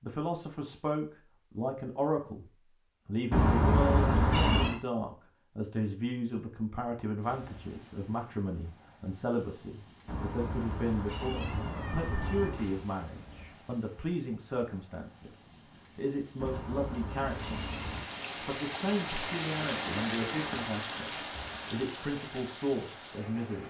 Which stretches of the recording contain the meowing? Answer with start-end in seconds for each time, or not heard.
3.3-4.8, 10.1-12.7, 16.4-18.1.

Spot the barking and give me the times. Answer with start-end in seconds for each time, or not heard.
not heard.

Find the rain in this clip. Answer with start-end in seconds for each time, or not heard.
7.2-23.6.